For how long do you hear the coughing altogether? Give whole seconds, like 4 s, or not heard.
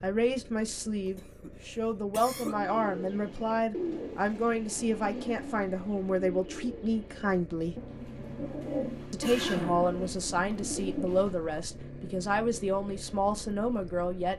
3 s.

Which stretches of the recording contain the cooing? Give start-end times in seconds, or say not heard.
2.4-11.8.